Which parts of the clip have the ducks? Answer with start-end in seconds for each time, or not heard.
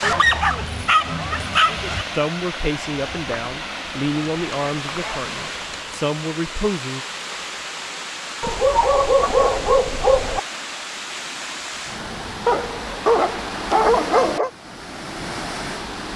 not heard.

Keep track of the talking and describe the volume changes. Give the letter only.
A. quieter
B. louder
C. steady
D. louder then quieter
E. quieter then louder
E.